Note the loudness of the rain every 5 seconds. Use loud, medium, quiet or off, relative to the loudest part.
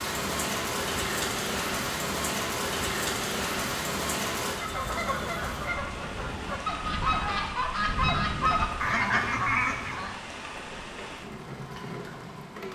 loud, medium, medium.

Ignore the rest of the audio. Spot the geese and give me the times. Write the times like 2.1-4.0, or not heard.
4.5-10.2.